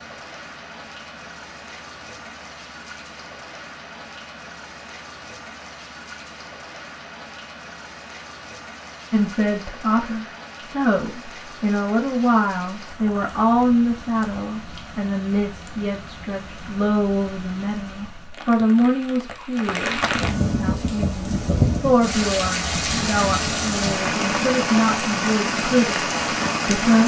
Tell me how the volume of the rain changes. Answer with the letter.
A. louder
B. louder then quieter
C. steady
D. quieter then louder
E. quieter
A.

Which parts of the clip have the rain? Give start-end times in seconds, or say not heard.
0.0-27.0.